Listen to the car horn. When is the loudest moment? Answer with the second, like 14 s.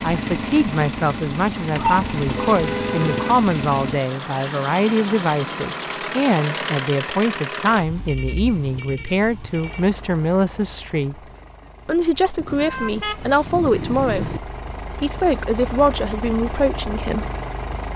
2 s.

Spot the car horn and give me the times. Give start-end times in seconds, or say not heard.
1.7-3.4, 7.8-9.8, 12.3-14.4.